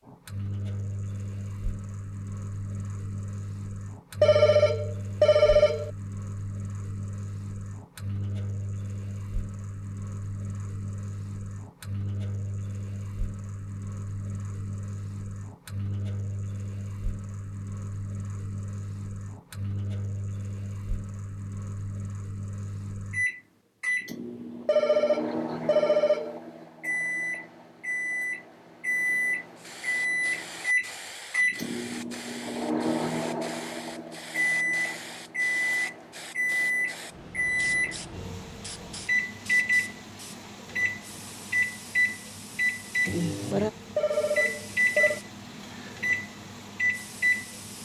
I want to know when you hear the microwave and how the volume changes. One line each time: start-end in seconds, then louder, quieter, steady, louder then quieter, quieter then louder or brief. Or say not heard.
0.1-47.8 louder.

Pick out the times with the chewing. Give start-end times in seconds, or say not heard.
not heard.